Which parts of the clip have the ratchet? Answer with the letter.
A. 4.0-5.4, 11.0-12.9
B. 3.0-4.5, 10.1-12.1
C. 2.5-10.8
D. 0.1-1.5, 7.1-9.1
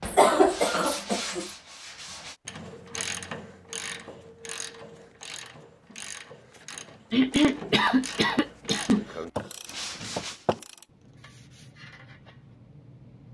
C.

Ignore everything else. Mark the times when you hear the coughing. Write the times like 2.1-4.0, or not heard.
0.1-1.5, 7.1-9.1.